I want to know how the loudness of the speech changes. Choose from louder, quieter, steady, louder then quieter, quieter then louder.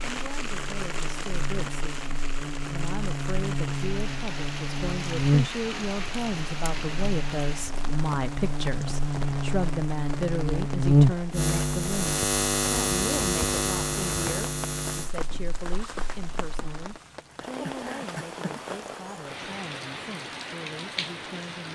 louder then quieter.